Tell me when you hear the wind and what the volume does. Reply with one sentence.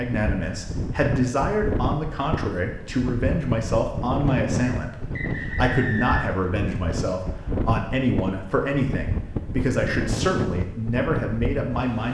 The wind can be heard from 0.0 to 12.0 s, at a steady volume.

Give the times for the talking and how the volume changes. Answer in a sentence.
You can hear the talking from 0.0 to 12.0 s, at a steady volume.